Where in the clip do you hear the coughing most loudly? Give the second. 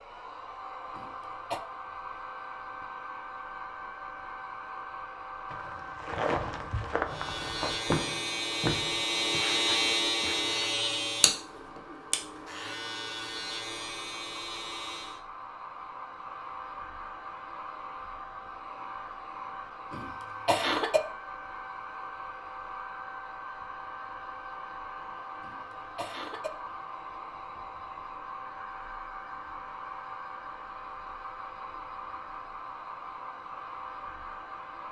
21 s.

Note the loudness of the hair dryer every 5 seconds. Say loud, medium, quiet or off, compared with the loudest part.
loud, loud, medium, loud, loud, loud, loud.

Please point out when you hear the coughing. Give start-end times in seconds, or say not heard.
0.9-1.6, 19.9-21.0, 25.4-26.5.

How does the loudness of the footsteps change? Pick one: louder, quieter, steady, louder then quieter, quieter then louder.
quieter.